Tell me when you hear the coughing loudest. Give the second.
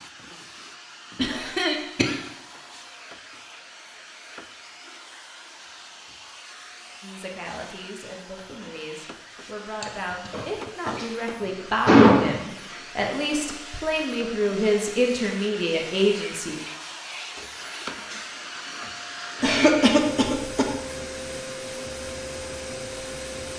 12 s.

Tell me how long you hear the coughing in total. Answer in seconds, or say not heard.
5 s.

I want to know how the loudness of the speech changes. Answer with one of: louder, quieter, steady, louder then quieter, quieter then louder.
louder.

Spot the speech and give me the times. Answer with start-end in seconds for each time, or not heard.
7.0-16.6.